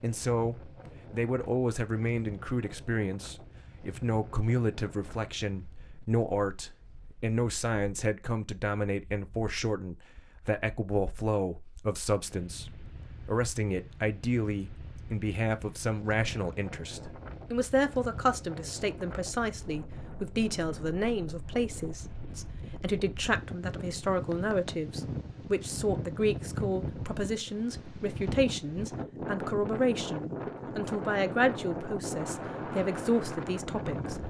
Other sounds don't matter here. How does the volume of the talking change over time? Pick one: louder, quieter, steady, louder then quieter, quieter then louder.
steady.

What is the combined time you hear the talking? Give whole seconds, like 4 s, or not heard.
34 s.